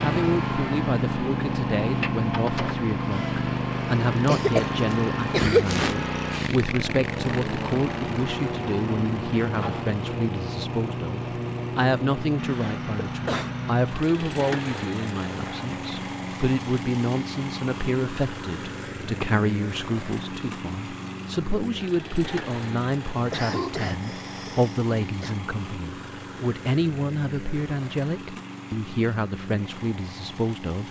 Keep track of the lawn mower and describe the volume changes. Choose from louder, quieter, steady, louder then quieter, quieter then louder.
quieter.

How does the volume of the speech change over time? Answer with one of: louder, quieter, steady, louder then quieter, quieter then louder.
steady.